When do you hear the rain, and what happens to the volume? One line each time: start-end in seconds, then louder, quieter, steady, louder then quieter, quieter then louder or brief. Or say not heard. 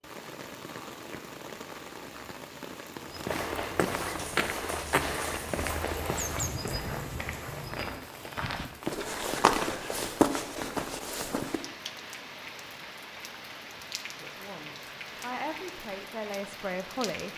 0.0-17.3 steady.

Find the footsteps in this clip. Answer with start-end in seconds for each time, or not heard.
3.1-11.6.